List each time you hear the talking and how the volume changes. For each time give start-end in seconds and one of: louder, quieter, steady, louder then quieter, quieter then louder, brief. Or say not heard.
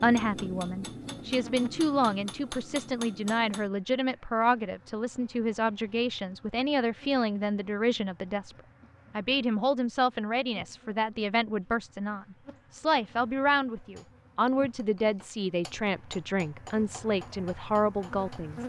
0.0-18.6 steady.